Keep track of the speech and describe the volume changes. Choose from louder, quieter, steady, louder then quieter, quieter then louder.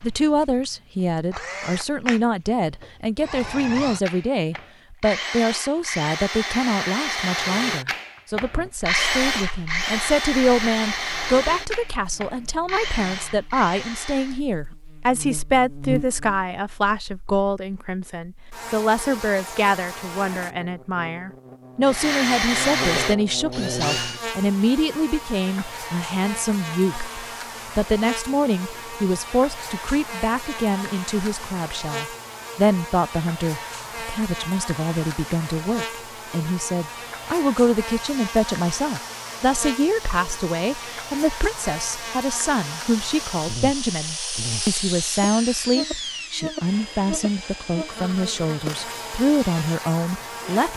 steady.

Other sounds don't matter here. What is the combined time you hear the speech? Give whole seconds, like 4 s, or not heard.
51 s.